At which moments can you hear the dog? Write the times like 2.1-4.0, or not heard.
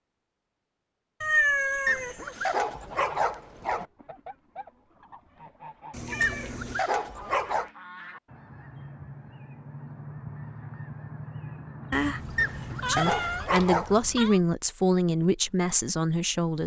1.9-3.9, 6.2-7.7, 12.3-13.9.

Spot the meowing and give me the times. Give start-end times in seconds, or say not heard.
1.2-2.5, 5.9-6.8, 11.9-14.4.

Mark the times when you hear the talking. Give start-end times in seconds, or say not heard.
12.8-16.6.